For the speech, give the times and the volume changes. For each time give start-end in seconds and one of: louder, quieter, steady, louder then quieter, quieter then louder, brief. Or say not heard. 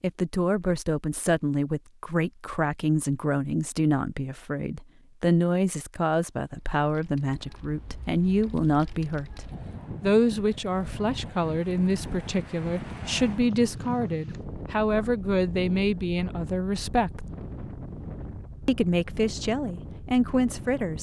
0.0-17.2 steady
18.6-20.9 brief.